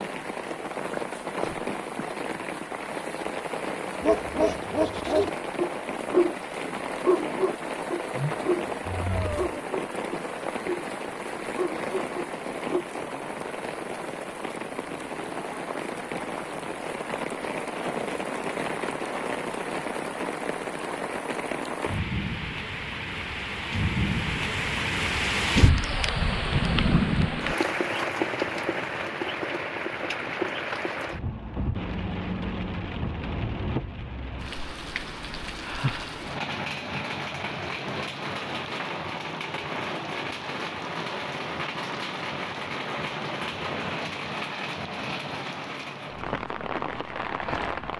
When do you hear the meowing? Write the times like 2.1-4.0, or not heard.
8.1-9.6.